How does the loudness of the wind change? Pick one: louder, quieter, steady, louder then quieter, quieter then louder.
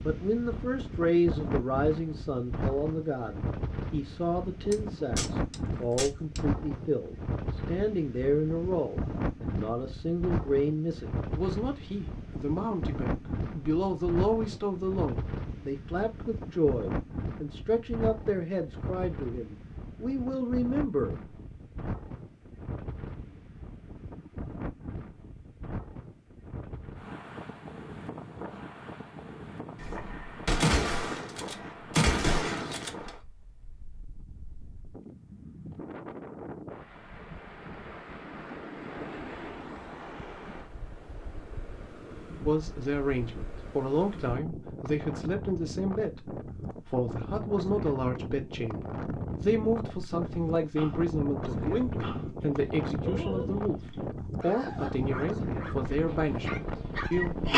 quieter then louder.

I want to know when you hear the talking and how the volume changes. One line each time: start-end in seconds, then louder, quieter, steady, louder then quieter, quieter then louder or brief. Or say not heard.
0.0-21.1 steady
42.5-57.4 steady.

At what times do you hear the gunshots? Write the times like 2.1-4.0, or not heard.
4.7-6.4, 29.8-33.1.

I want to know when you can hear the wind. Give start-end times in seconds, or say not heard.
0.0-57.5.